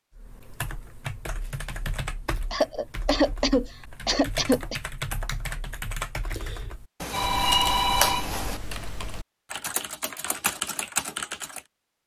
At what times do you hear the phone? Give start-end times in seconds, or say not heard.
7.0-8.6.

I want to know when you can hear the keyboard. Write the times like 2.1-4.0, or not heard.
0.1-11.7.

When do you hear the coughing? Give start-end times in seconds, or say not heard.
2.5-4.8.